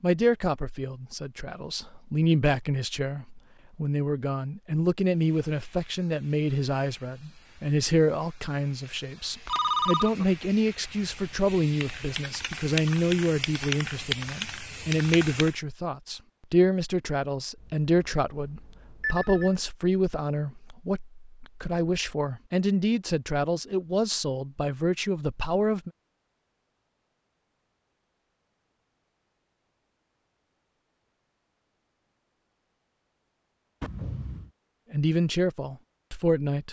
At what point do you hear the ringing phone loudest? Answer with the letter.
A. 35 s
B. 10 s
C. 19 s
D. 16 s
B.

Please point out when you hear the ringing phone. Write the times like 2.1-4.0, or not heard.
9.4-10.2, 17.6-19.5, 33.8-34.5.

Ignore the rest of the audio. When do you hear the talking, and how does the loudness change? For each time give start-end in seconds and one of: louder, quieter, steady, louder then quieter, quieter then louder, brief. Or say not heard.
0.0-25.9 steady
34.9-36.6 brief.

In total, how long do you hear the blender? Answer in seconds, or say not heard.
not heard.